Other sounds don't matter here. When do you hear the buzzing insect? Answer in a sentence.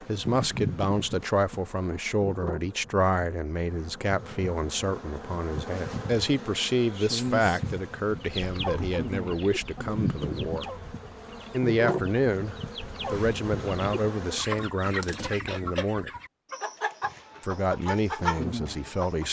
The buzzing insect can be heard from 0.0 to 14.4 s and from 17.0 to 19.2 s.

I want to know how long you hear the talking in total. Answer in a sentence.
You can hear the talking for 17 seconds altogether.